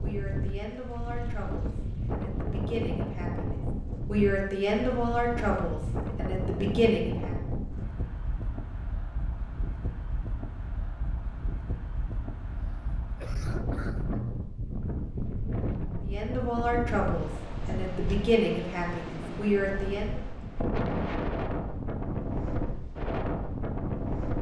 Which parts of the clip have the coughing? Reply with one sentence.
The coughing can be heard from 12.5 to 14.2 s.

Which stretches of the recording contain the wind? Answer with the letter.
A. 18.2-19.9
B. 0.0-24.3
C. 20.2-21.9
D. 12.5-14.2
B.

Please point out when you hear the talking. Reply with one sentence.
The talking can be heard from 0.0 to 7.3 s and from 16.0 to 20.2 s.